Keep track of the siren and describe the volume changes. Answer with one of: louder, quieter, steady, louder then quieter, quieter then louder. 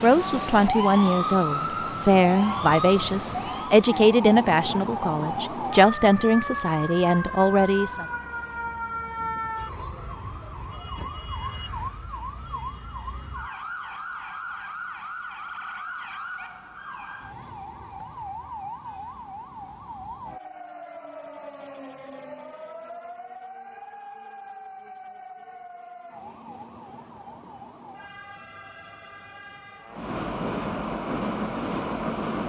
quieter.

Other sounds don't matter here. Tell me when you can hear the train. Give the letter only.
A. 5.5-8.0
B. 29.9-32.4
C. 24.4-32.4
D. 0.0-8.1
B.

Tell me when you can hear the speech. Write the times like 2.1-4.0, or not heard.
0.0-8.1.